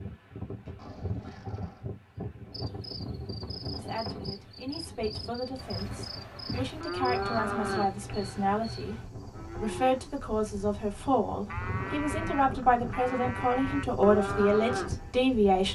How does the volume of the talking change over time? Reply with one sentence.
The volume of the talking goes up.